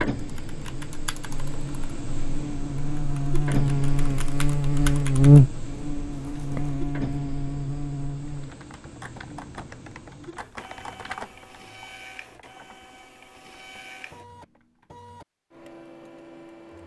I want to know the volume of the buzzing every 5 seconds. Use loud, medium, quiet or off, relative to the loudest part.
medium, loud, off, off.